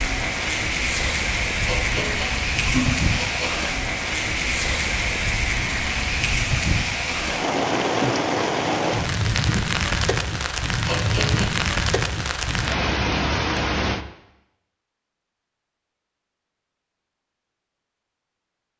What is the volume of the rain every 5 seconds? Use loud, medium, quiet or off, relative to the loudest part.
loud, loud, loud, off.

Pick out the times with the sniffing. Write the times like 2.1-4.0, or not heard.
1.6-3.6, 10.8-11.6.